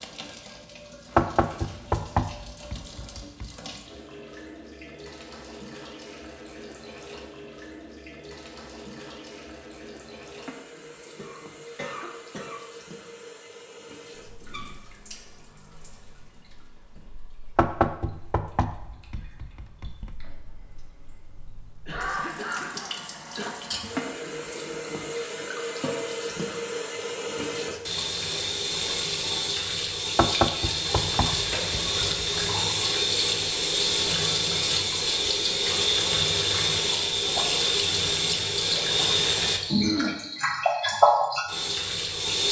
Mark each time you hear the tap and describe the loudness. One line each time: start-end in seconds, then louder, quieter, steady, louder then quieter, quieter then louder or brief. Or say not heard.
0.0-42.4 louder.